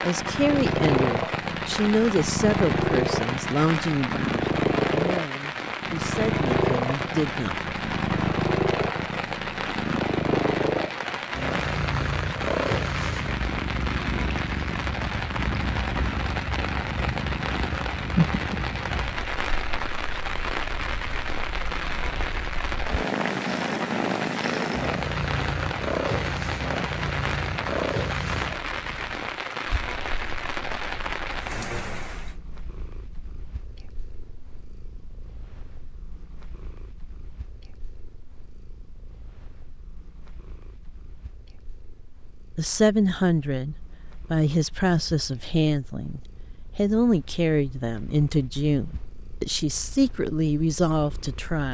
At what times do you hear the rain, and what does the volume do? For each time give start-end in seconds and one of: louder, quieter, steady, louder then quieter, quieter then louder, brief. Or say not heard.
0.0-32.4 steady.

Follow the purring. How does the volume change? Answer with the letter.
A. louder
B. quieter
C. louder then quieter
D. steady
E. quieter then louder
B.